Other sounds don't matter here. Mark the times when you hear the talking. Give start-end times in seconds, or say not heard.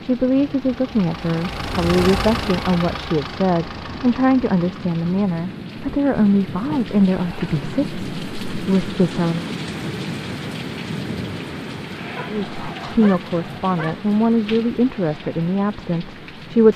0.0-9.5, 12.2-16.7.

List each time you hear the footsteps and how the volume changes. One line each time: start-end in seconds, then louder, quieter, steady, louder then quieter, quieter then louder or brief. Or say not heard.
not heard.